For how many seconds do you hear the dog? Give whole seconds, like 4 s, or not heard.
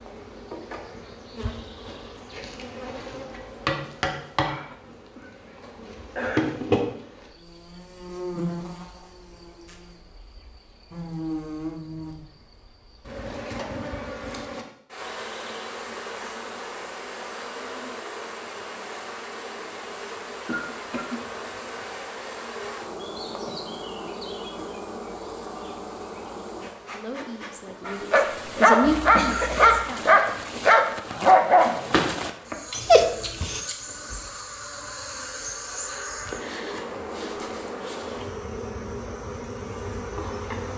6 s.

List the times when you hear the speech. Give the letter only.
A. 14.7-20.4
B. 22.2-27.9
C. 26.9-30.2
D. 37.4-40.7
C.